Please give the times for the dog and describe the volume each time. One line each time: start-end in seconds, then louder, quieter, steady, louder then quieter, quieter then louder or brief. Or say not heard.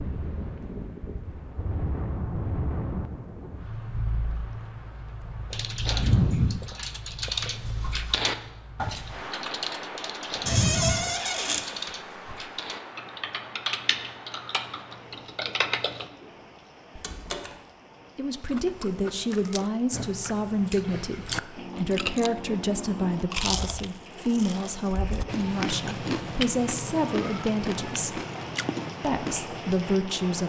not heard.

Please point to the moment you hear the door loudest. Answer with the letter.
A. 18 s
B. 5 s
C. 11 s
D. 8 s
C.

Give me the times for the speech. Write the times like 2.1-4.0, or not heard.
18.1-28.2, 29.0-30.4.